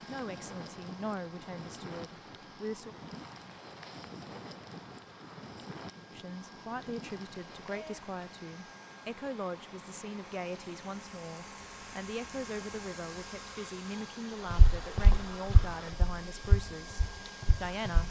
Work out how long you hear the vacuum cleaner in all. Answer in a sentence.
The vacuum cleaner can be heard for 18 seconds in total.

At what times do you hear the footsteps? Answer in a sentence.
You can hear the footsteps from 14.5 to 18.0 s.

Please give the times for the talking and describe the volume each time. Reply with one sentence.
The talking can be heard briefly from 0.1 to 3.0 s; and from 6.1 to 18.0 s, at a steady volume.